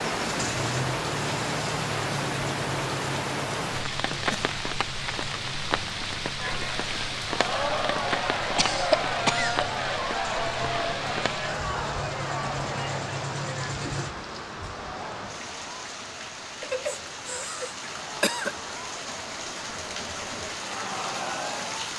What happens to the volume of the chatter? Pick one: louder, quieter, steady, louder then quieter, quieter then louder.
quieter then louder.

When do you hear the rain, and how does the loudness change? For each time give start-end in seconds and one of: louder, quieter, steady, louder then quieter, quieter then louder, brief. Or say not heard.
0.0-21.9 quieter.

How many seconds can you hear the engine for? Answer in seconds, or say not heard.
14 s.